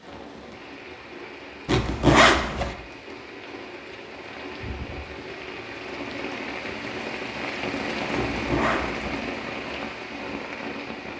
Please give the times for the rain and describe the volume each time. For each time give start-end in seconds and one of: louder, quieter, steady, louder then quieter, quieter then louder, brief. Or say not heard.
0.0-11.1 louder.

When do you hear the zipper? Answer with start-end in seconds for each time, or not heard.
1.6-2.8, 8.1-9.2.